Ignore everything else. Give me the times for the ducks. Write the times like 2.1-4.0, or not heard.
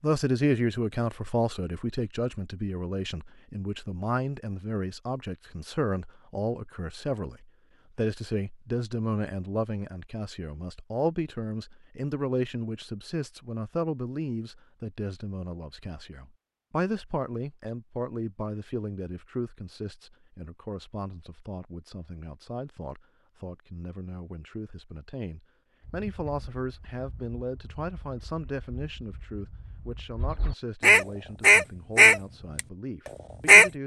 25.8-33.7.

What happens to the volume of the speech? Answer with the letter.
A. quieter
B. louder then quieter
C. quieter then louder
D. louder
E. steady
A.